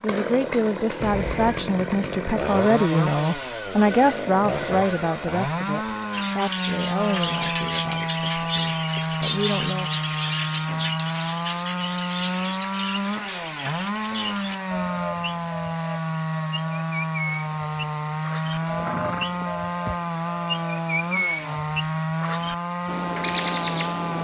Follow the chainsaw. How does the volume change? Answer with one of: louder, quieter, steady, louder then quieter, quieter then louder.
steady.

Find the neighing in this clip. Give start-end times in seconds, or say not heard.
1.0-1.7, 18.6-20.1.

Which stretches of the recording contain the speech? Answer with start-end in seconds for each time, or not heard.
0.0-10.0.